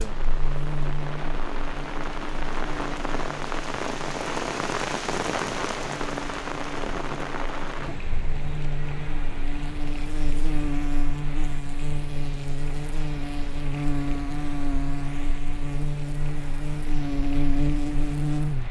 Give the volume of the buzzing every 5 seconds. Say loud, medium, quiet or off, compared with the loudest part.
medium, medium, loud, loud.